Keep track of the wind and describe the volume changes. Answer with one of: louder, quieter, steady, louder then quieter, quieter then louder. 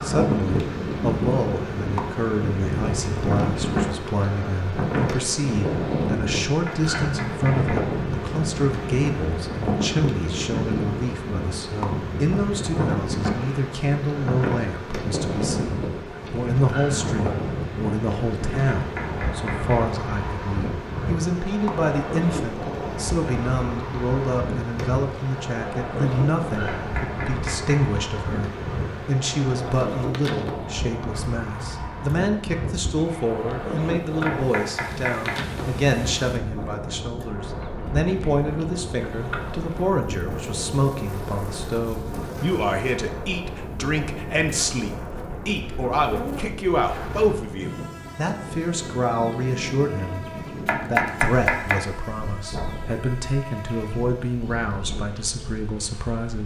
quieter.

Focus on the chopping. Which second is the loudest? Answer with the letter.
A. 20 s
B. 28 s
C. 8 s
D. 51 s
D.